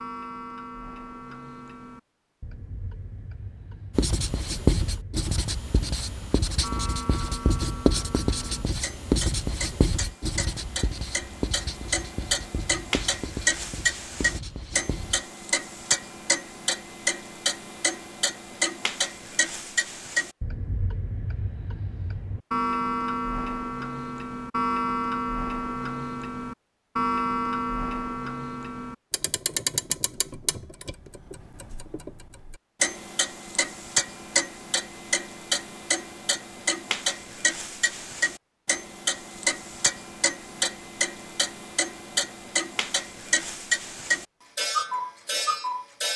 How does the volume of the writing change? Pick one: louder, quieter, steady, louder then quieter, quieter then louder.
quieter.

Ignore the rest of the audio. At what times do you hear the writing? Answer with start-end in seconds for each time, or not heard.
4.0-15.2.